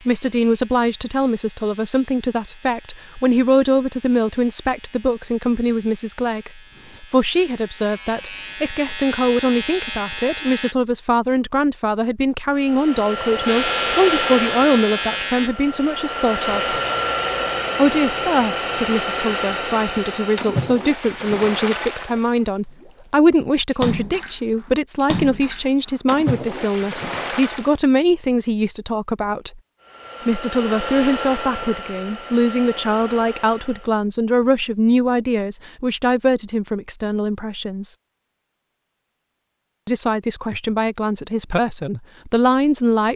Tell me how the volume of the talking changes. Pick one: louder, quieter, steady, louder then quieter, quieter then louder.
steady.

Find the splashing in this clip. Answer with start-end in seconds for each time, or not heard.
20.4-22.9, 23.7-27.8.